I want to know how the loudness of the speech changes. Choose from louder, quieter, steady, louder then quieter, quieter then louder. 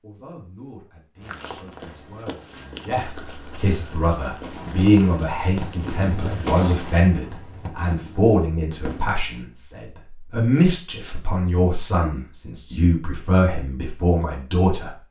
louder.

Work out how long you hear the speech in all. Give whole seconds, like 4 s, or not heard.
15 s.